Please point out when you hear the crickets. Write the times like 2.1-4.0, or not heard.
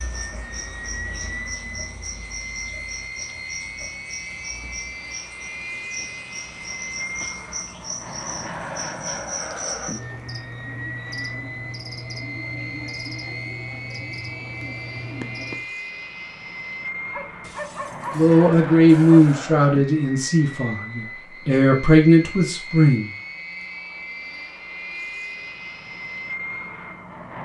0.0-15.7.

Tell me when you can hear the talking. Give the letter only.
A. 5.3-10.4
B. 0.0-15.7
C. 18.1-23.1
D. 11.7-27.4
C.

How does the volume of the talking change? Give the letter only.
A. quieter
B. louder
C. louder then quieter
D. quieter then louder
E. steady
D.